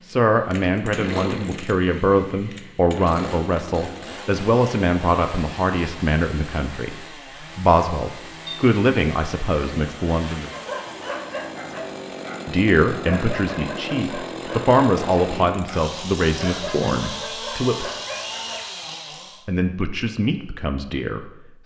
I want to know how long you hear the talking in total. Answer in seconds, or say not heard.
18 s.